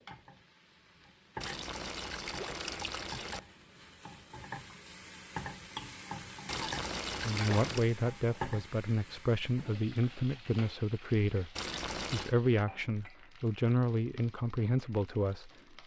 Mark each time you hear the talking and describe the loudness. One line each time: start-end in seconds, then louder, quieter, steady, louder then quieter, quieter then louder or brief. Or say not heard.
7.2-15.5 steady.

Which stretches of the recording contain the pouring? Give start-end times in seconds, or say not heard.
1.4-3.4, 6.5-7.9, 11.6-12.3.